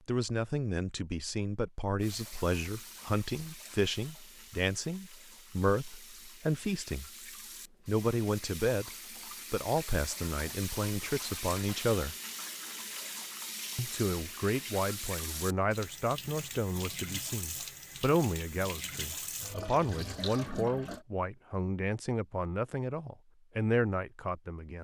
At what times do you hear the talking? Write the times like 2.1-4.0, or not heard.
0.1-7.1, 7.8-8.9, 9.5-12.2, 13.8-24.8.